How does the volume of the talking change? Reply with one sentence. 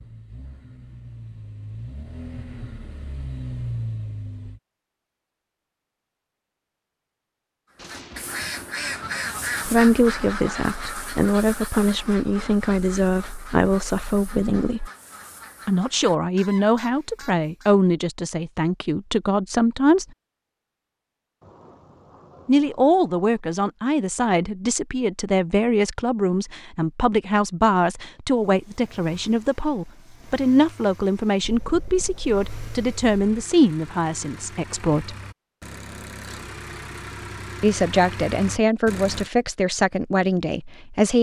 The volume of the talking stays about the same.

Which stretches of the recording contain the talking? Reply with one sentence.
The talking can be heard from 9.7 to 14.9 s, from 15.7 to 20.1 s, from 22.4 to 35.1 s and from 37.6 to 41.1 s.